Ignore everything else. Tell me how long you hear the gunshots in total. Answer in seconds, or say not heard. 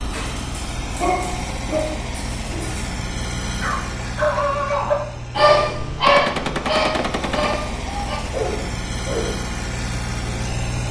2 s.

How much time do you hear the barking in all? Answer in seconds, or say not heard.
9 s.